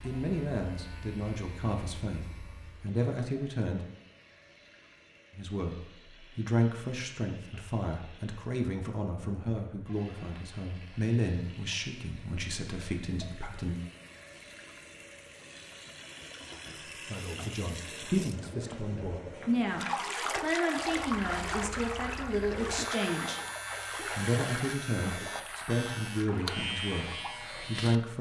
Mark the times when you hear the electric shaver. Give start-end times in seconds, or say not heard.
0.0-3.0, 20.8-28.1.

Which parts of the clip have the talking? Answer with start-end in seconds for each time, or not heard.
0.0-3.9, 5.3-13.8, 17.1-23.4, 24.1-28.1.